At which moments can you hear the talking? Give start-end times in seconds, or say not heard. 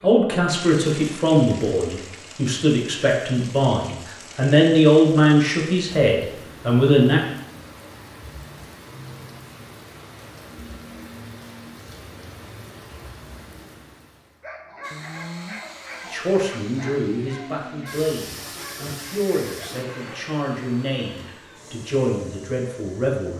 0.0-7.2, 16.1-23.3.